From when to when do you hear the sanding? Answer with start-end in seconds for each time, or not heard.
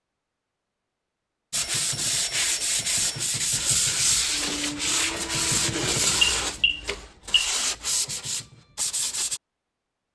1.5-9.4.